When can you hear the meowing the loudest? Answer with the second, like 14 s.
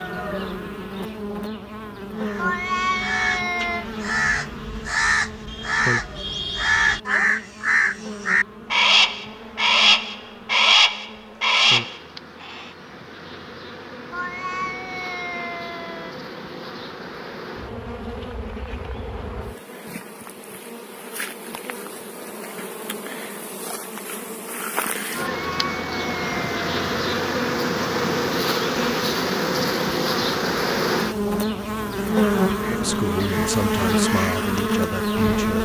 3 s.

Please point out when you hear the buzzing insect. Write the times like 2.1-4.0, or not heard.
0.0-35.5.